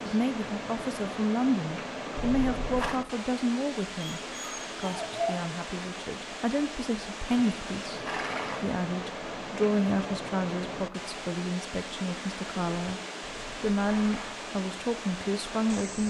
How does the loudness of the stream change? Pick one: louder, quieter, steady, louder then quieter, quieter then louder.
steady.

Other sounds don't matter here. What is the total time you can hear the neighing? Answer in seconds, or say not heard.
3 s.